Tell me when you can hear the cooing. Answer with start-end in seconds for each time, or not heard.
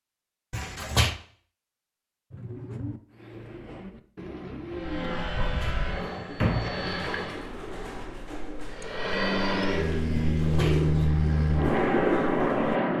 2.3-12.8.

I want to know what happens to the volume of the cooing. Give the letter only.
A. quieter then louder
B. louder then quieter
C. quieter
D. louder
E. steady
D.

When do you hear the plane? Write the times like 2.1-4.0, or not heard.
4.7-7.5, 8.7-12.9.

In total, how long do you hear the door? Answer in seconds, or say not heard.
3 s.